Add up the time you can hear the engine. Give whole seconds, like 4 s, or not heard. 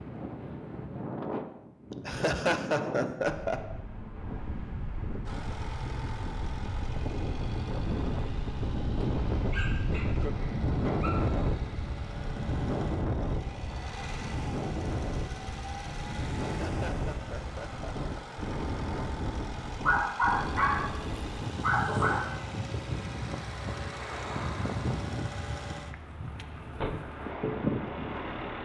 23 s.